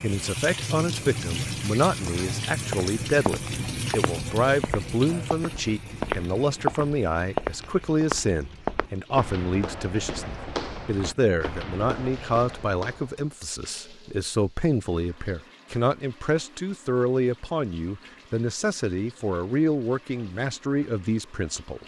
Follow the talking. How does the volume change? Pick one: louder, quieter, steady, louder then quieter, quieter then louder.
steady.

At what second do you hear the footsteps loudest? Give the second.
7 s.